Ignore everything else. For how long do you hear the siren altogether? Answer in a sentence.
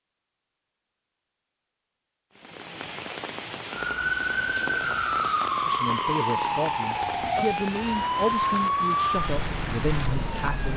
The siren can be heard for 7 seconds in total.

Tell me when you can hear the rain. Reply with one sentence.
You can hear the rain from 2.3 to 10.7 s.